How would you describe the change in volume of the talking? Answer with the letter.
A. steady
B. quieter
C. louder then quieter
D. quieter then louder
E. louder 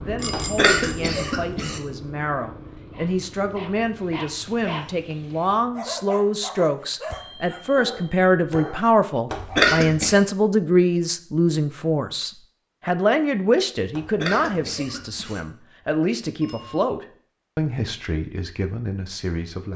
C.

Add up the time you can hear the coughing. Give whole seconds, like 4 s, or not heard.
4 s.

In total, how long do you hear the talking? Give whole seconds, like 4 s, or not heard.
20 s.